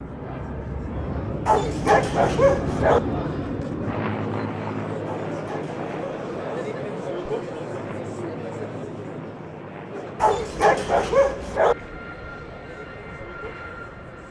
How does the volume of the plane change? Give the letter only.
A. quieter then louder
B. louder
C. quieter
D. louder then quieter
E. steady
C.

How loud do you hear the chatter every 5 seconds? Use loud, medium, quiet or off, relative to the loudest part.
medium, loud, medium.